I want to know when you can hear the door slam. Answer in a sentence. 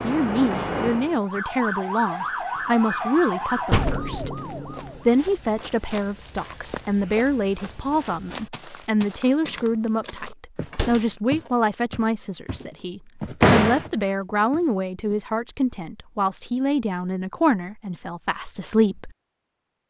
You can hear the door slam from 3.7 to 4.2 s, from 10.7 to 11.1 s and from 13.4 to 13.8 s.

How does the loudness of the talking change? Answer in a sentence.
The volume of the talking stays about the same.